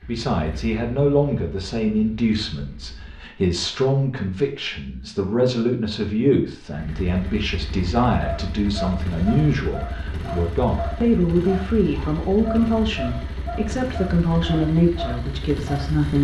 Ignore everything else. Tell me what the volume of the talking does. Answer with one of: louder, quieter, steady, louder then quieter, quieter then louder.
steady.